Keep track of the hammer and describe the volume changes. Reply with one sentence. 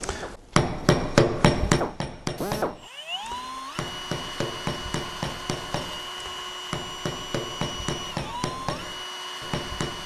The volume of the hammer goes down.